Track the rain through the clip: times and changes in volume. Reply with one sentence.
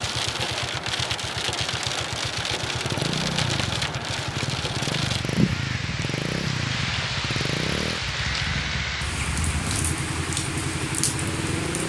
The rain can be heard from 0.0 to 11.8 s, at a steady volume.